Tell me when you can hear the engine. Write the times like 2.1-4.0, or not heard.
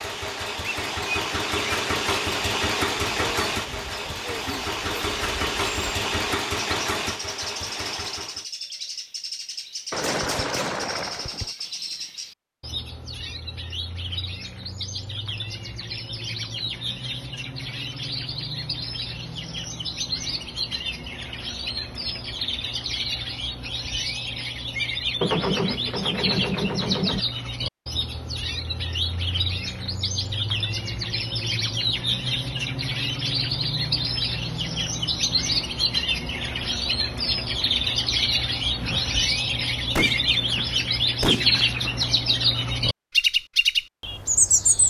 0.0-8.4.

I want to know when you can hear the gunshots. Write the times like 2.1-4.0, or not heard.
9.9-11.5, 25.2-27.2, 38.8-42.1.